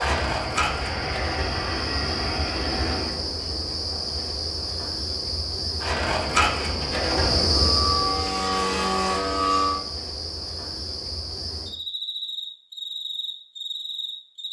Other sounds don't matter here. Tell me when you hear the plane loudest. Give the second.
9 s.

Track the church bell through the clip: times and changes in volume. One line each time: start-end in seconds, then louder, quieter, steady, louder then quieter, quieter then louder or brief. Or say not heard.
not heard.